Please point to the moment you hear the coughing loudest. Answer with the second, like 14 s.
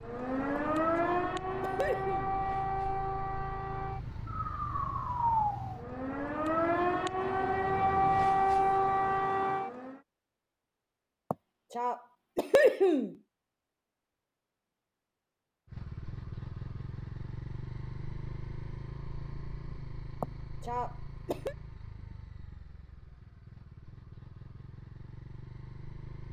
13 s.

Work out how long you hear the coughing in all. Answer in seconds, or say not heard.
5 s.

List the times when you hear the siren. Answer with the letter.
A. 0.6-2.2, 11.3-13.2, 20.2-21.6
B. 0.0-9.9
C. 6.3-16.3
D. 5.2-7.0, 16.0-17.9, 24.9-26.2
B.